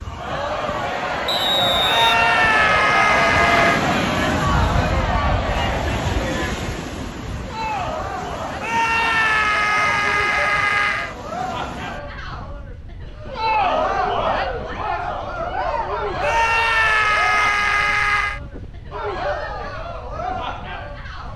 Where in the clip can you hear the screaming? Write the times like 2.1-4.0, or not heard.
1.9-3.8, 8.6-11.2, 16.2-18.4.